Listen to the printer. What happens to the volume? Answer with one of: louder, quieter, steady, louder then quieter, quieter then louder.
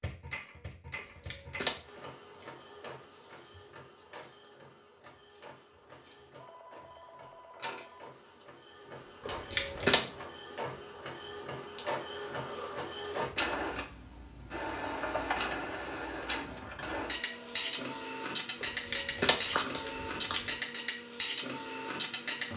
louder.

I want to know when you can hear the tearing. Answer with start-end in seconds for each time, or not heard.
0.9-1.7, 9.2-10.0, 18.6-20.6.